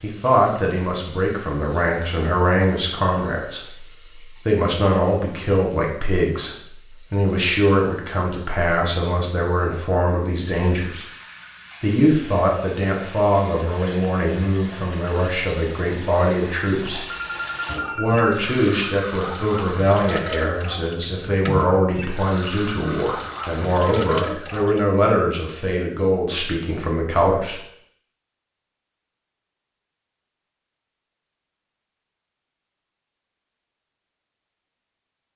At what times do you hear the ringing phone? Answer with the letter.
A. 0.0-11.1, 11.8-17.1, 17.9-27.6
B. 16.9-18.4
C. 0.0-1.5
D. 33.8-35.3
B.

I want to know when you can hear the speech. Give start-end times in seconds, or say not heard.
0.0-11.1, 11.8-17.1, 17.9-27.6.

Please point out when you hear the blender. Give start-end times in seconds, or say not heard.
not heard.